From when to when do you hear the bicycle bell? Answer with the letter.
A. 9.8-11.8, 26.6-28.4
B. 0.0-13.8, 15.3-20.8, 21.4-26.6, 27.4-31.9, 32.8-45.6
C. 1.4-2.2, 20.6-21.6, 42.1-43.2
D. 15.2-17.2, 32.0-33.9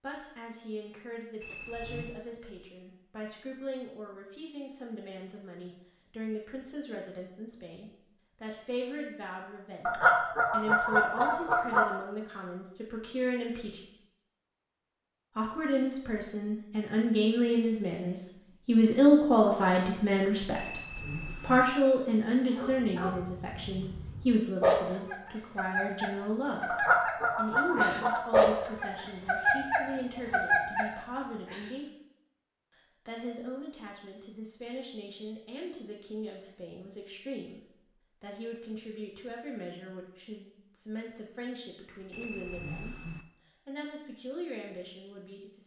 C.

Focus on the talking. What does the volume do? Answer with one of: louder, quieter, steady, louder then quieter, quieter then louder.
louder then quieter.